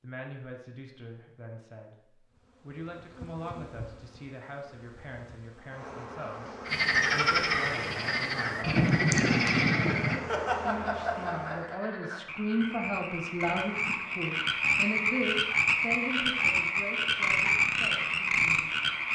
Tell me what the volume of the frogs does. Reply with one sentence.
The loudness of the frogs goes down, then up.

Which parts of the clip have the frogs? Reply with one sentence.
The frogs can be heard from 6.7 to 19.1 s.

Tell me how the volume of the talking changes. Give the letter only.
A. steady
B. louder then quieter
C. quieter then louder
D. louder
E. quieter
B.